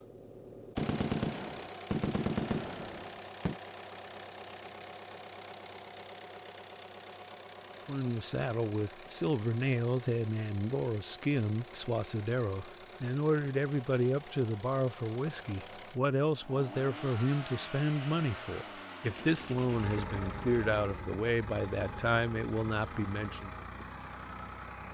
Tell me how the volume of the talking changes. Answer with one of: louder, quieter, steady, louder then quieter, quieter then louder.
steady.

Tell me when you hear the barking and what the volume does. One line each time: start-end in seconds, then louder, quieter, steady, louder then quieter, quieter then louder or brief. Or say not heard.
not heard.